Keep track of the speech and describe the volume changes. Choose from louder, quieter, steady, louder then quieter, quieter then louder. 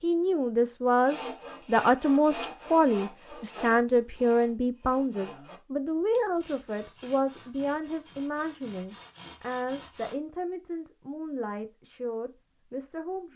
quieter.